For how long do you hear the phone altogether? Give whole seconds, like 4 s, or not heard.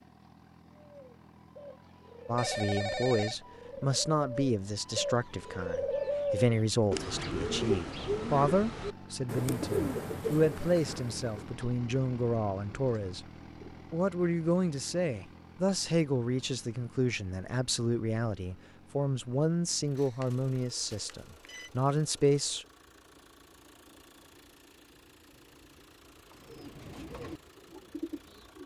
3 s.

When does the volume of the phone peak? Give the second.
3 s.